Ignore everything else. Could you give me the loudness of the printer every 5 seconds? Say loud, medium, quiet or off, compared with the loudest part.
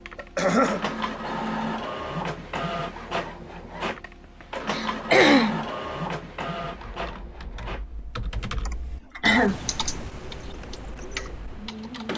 loud, loud, medium.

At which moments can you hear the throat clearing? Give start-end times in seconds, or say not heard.
0.1-0.8, 4.7-5.7, 8.7-9.6.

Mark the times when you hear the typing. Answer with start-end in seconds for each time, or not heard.
6.6-12.1.